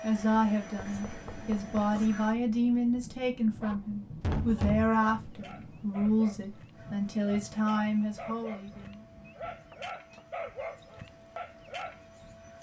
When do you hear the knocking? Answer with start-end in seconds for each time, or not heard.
1.0-1.9, 4.2-5.0, 9.7-10.7.